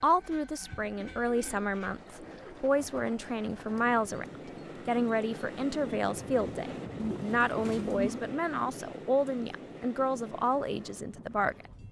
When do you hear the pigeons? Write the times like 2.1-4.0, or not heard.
0.7-2.6, 7.0-8.2.